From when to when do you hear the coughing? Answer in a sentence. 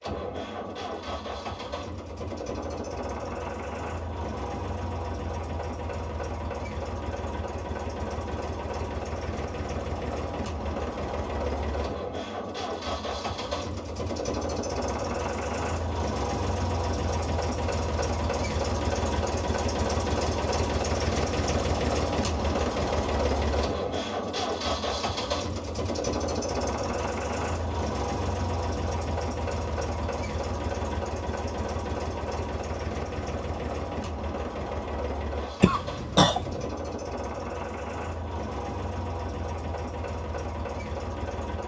You can hear the coughing from 35.6 to 36.6 s.